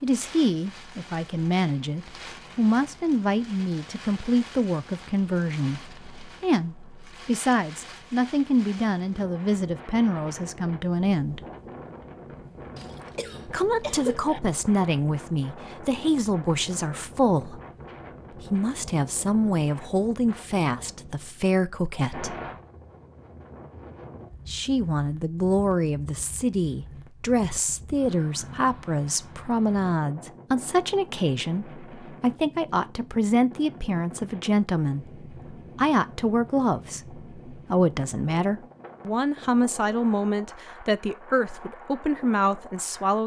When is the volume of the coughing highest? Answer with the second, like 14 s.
14 s.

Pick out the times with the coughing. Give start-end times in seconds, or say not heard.
12.8-14.4.